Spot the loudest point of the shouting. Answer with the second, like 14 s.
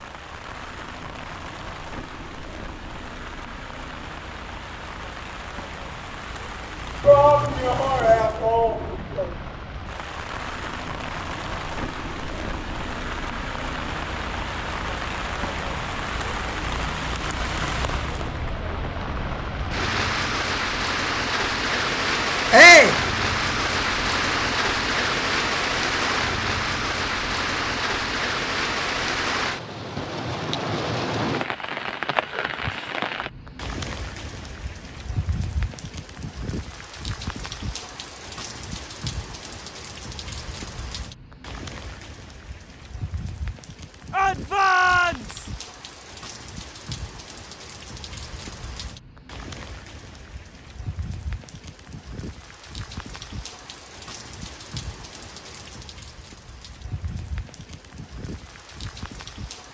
23 s.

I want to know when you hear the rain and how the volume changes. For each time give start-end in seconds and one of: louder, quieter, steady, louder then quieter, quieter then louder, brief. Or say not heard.
0.0-59.6 louder then quieter.